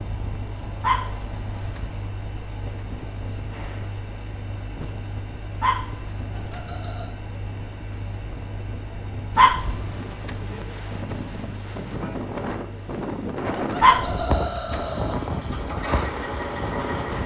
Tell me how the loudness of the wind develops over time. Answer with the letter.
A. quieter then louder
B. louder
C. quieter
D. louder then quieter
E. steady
B.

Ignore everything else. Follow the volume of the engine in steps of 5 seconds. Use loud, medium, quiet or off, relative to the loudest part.
medium, medium, medium, loud.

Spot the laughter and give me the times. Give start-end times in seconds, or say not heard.
6.3-7.1, 13.6-15.2.